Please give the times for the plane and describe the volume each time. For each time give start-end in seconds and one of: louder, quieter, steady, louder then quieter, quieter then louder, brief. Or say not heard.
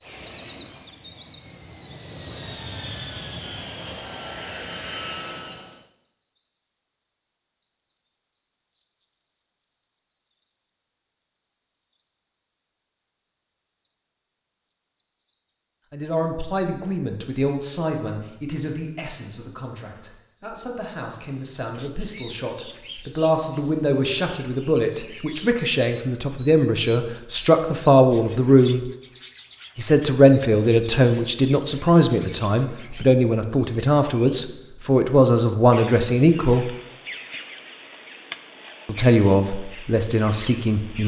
0.0-5.8 louder.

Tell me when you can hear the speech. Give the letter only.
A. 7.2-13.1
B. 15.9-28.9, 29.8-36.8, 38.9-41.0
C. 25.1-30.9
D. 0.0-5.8
B.